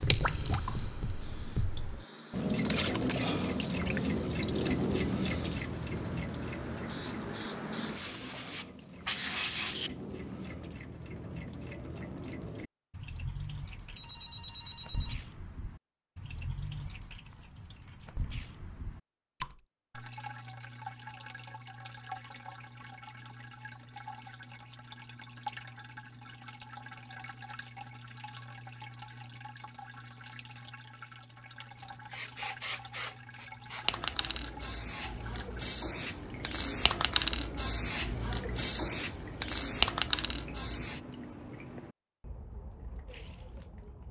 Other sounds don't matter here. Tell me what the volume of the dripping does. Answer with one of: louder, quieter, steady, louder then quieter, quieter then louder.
quieter.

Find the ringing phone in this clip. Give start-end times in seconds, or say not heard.
13.7-15.2.